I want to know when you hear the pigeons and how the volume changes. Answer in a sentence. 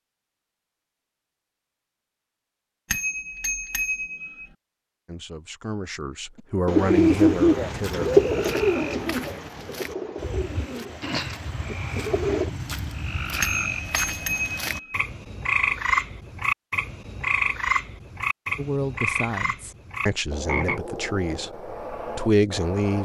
You can hear the pigeons from 6.7 to 12.5 s, getting quieter.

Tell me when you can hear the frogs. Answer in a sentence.
The frogs can be heard from 6.8 to 22.9 s.